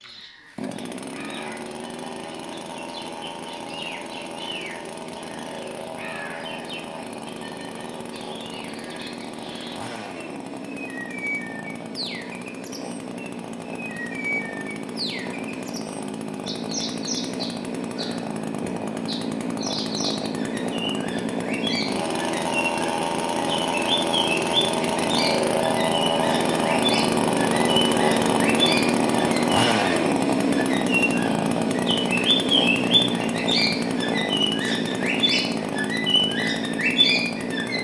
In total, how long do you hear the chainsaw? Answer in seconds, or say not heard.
38 s.